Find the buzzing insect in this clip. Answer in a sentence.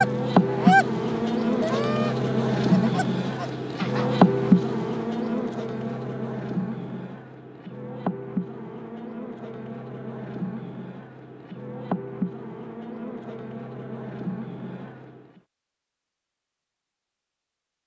You can hear the buzzing insect from 0.0 to 15.4 s.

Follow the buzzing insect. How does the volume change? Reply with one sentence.
The loudness of the buzzing insect goes down.